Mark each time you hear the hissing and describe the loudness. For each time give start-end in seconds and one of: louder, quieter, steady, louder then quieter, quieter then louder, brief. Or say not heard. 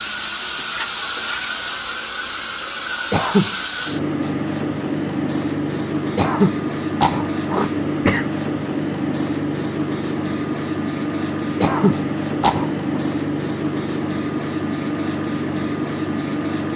0.0-16.7 steady.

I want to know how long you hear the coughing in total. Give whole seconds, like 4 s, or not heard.
4 s.